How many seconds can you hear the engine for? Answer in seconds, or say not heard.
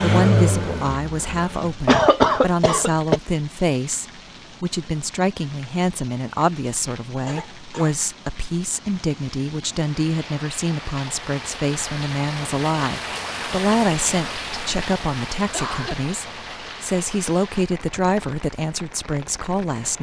2 s.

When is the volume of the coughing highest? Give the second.
2 s.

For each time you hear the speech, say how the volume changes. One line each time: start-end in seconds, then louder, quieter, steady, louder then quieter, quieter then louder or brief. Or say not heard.
0.0-19.9 steady.